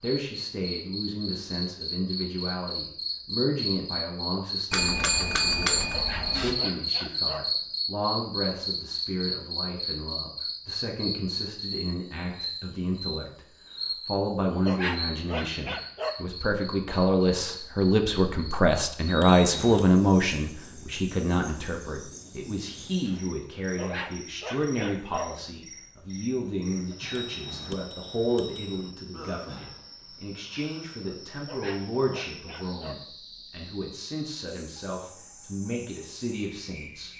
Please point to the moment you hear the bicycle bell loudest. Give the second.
6 s.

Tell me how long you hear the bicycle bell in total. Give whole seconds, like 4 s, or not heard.
5 s.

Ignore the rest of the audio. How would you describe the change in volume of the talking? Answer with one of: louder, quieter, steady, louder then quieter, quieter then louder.
louder then quieter.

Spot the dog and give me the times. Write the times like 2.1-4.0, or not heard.
5.9-7.5, 14.7-16.3, 23.8-25.4, 31.4-33.1.